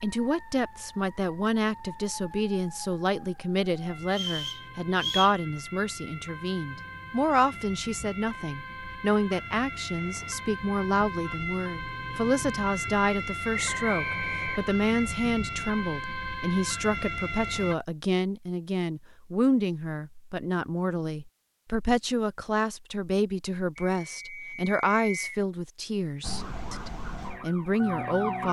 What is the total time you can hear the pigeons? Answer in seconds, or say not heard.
not heard.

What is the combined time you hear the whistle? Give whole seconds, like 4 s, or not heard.
4 s.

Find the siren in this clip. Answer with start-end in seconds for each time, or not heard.
0.0-17.8, 26.2-28.4.